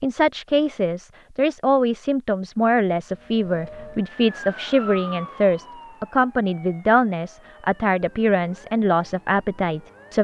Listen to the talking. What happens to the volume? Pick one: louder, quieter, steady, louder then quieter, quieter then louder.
steady.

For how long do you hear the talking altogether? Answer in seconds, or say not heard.
10 s.